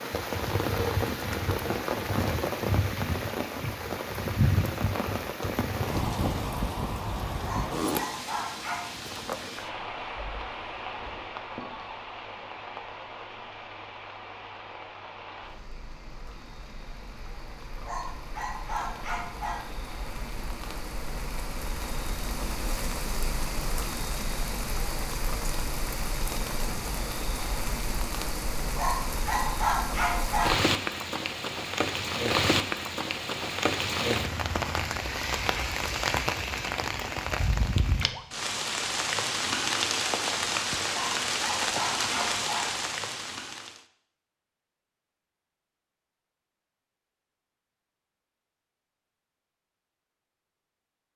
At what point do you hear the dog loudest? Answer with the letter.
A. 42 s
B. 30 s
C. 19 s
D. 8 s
B.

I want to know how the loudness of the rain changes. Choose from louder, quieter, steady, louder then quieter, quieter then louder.
quieter then louder.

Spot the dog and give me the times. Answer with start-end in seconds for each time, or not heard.
7.4-8.9, 17.9-19.7, 28.8-30.7, 40.9-42.9.